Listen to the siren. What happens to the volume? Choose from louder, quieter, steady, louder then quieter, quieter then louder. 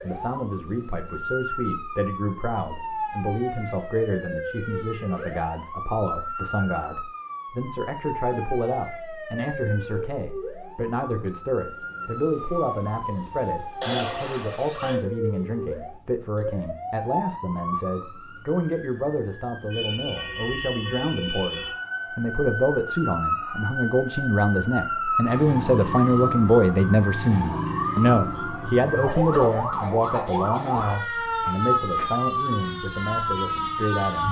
louder.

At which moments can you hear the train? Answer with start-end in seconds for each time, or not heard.
not heard.